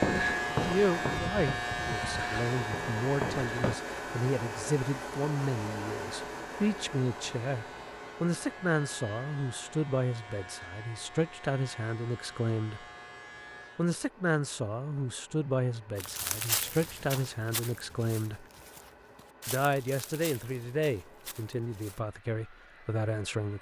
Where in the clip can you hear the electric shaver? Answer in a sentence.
The electric shaver can be heard from 0.0 to 13.9 s.